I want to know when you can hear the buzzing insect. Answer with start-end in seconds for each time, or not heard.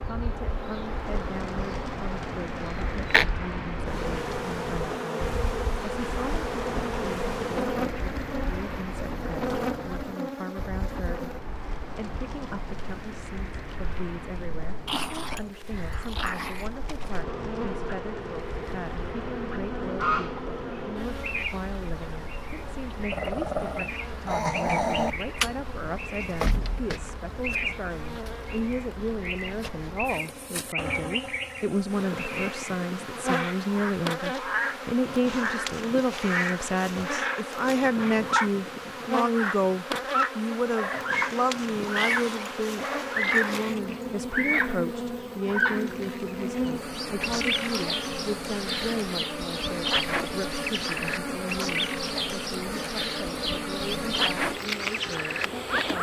0.0-55.9.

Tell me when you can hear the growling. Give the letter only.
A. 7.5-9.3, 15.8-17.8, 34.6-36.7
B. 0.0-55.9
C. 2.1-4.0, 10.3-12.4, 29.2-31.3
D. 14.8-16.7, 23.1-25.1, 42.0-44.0
D.